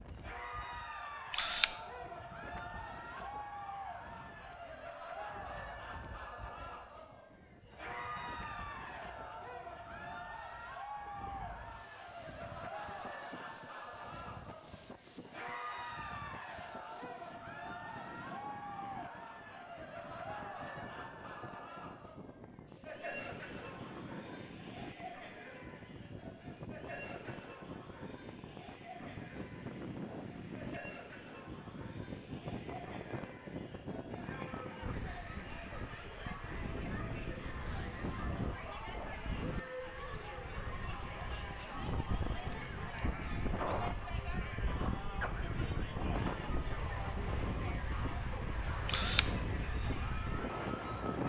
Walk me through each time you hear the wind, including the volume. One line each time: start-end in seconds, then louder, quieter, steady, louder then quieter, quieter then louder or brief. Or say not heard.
0.0-51.2 louder.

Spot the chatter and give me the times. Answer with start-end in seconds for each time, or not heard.
0.1-51.2.